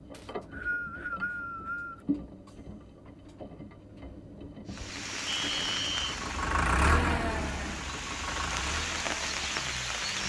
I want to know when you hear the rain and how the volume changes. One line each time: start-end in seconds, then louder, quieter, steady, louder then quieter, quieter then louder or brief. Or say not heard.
4.7-10.2 quieter then louder.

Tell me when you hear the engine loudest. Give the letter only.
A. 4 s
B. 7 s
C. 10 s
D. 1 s
B.